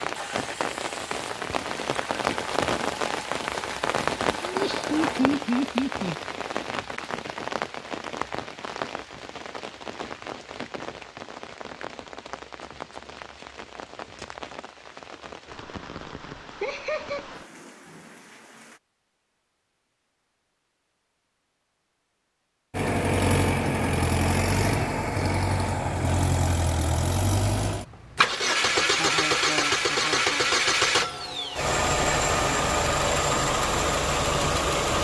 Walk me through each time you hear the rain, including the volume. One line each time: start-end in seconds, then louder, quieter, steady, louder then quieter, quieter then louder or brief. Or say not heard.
0.0-18.8 quieter.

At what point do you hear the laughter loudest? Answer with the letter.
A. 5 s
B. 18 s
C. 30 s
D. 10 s
A.